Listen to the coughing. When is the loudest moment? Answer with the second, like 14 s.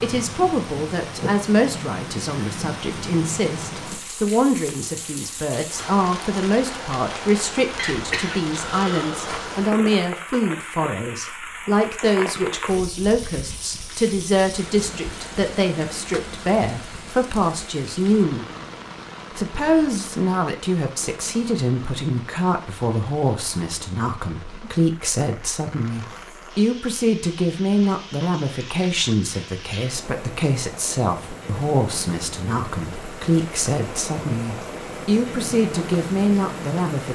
8 s.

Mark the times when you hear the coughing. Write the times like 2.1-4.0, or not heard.
7.8-9.5.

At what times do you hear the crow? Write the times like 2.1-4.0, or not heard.
not heard.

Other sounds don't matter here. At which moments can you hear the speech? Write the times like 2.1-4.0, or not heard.
0.0-18.4, 19.4-37.1.